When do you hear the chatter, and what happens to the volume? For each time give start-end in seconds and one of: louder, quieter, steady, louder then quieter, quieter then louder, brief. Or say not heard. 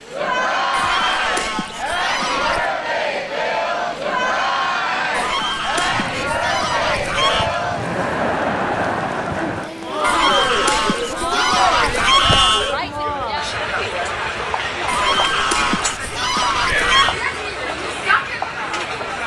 0.0-19.2 steady.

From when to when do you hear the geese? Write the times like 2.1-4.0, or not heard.
0.7-2.7, 5.1-7.5, 10.0-12.8, 14.8-17.1.